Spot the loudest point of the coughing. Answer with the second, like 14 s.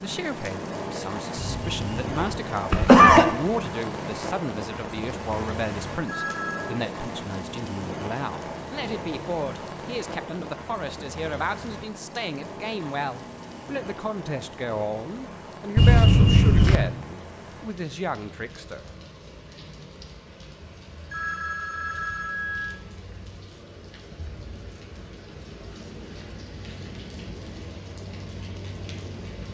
3 s.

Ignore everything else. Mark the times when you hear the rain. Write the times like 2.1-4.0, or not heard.
0.0-29.4.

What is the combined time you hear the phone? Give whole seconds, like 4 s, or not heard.
2 s.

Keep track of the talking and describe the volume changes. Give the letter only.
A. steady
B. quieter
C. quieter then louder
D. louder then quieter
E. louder
A.